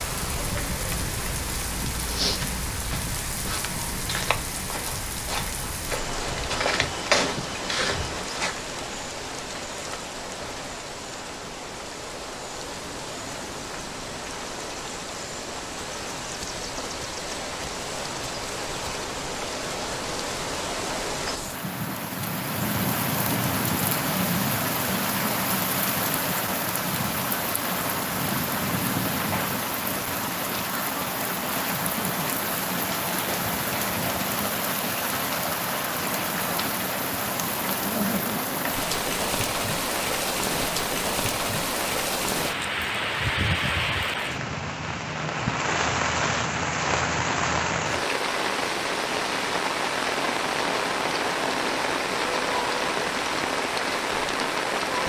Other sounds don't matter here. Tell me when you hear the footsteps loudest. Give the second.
7 s.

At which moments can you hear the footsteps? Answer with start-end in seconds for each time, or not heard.
1.9-8.5.